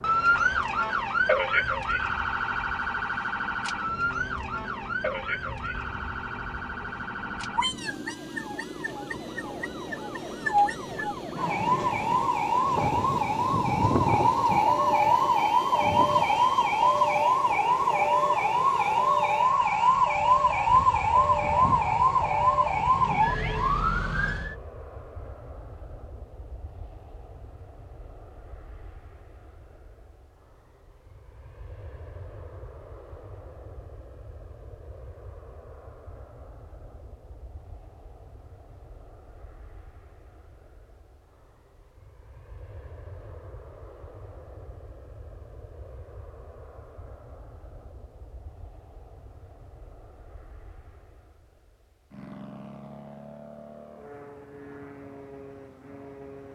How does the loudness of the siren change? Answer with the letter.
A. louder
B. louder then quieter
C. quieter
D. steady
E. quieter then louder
E.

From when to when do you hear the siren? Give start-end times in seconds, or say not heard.
0.0-24.6.